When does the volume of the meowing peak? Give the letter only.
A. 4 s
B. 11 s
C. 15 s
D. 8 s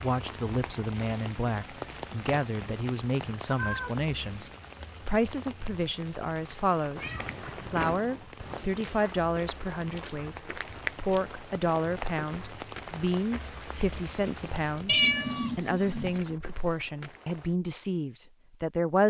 C.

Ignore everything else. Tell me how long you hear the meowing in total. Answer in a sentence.
You can hear the meowing for 4 seconds altogether.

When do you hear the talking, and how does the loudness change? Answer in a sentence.
You can hear the talking from 0.0 to 4.5 s, at a steady volume; and from 5.0 to 19.0 s, at a steady volume.